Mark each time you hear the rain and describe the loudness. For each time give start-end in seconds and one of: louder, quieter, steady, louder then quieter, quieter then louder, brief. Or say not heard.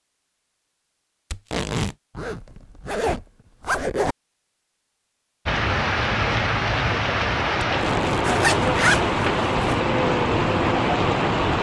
5.5-11.5 steady.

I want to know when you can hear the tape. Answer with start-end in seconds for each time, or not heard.
1.3-1.9, 7.7-8.2.